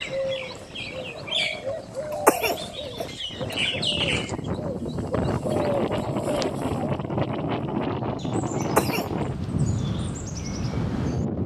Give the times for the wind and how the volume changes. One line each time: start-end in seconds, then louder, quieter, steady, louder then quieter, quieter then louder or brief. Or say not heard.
0.0-11.4 louder.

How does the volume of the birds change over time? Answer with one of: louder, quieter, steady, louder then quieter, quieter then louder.
quieter.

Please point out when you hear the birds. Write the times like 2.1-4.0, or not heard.
0.0-11.4.